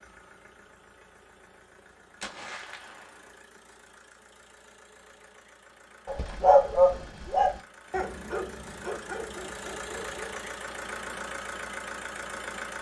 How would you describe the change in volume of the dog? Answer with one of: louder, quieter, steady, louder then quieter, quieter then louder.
quieter.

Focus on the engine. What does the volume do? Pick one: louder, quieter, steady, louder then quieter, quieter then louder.
louder.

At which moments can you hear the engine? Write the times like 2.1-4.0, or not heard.
0.0-12.7.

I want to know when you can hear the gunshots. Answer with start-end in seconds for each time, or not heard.
2.2-3.4.